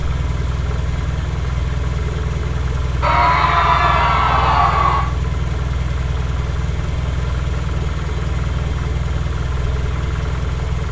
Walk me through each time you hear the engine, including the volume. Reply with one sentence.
You can hear the engine from 0.0 to 10.8 s, at a steady volume.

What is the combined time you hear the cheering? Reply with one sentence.
The cheering can be heard for 2 seconds in total.